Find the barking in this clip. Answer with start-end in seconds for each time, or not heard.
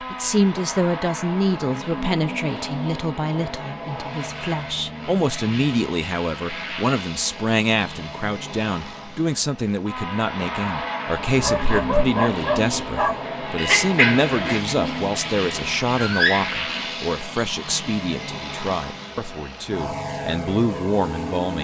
11.3-16.5.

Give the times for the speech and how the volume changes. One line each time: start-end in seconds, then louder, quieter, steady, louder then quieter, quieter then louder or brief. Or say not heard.
0.0-21.5 steady.